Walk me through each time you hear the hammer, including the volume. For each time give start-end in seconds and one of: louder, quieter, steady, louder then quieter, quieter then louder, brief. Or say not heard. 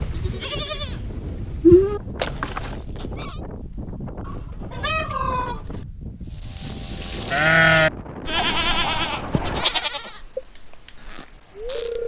not heard.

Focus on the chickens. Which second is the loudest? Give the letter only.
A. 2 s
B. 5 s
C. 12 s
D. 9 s
B.